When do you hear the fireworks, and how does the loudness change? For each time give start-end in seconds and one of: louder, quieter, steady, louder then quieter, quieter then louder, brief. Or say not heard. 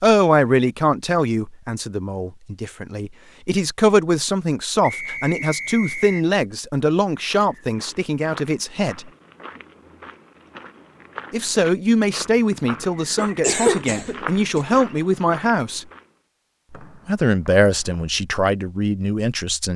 not heard.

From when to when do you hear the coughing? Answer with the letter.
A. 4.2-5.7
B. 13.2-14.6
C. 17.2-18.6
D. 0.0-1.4
B.